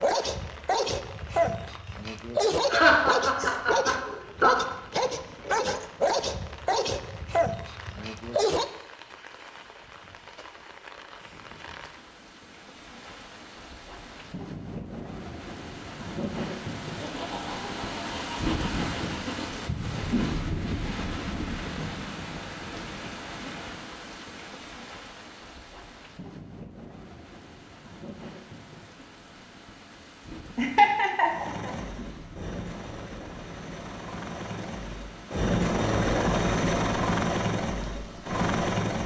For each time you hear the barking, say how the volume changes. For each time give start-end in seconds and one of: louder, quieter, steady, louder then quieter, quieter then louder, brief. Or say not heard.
0.0-8.7 steady.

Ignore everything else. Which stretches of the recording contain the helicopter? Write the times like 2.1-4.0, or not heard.
31.2-39.0.